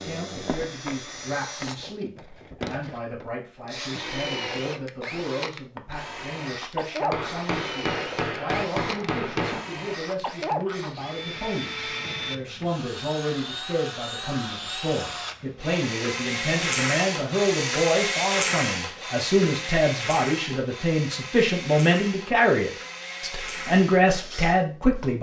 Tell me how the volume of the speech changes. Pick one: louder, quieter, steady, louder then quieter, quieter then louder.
louder.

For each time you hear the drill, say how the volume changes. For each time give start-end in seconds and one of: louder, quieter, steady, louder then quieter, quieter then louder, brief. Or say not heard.
0.0-25.1 louder then quieter.